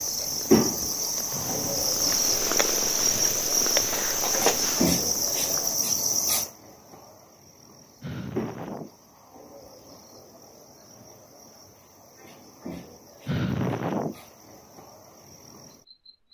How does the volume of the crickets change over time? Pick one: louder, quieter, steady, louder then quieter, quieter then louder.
quieter.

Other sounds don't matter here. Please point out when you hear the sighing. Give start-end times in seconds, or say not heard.
1.3-1.9, 8.0-8.9, 13.2-14.2.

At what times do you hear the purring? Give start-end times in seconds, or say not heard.
0.0-5.8.